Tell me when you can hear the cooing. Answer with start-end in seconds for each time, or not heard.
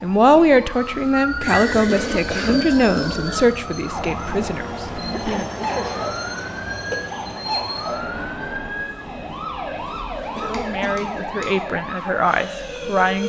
1.4-3.4, 10.2-11.7.